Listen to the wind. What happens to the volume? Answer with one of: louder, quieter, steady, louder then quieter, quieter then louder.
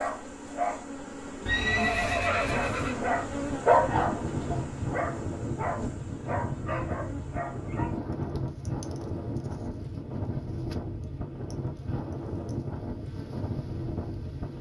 steady.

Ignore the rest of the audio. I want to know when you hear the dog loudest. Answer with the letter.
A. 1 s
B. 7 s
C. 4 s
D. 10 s
C.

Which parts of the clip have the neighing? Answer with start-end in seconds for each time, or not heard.
1.4-3.0.